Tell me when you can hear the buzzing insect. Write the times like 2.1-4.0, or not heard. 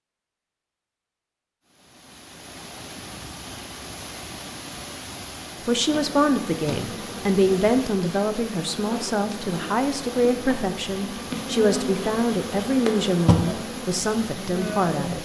5.8-15.1.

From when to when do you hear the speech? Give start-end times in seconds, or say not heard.
5.7-15.1.